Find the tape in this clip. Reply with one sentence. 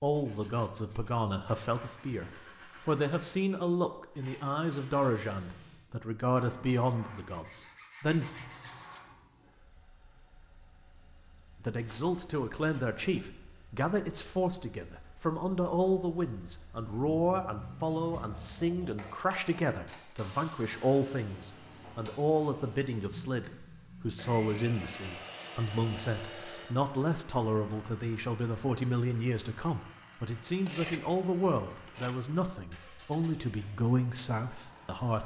You can't hear the tape here.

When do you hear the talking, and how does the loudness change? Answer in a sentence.
The talking can be heard from 0.0 to 8.2 s, at a steady volume; and from 11.6 to 35.2 s, at a steady volume.